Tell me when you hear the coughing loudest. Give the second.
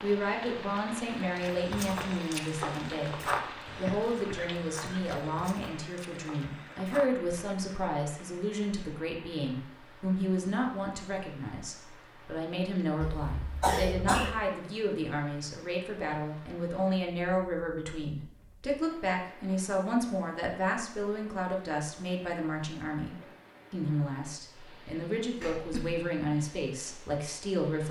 14 s.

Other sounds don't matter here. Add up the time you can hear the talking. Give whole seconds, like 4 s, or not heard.
28 s.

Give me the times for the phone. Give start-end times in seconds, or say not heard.
not heard.